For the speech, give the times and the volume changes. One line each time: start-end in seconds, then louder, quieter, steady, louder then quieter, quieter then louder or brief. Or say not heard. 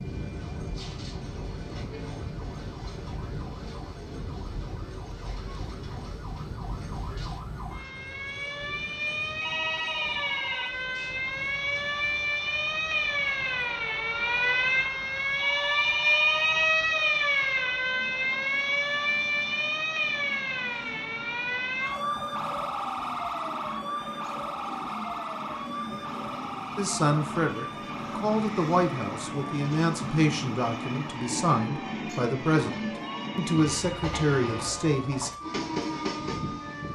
26.8-35.3 steady.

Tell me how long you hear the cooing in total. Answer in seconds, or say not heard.
not heard.